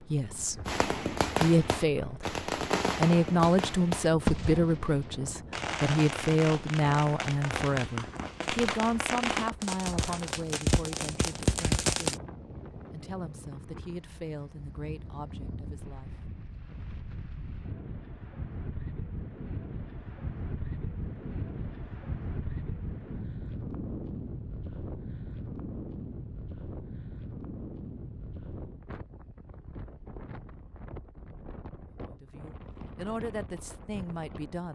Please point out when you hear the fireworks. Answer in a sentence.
You can hear the fireworks from 0.7 to 12.2 s.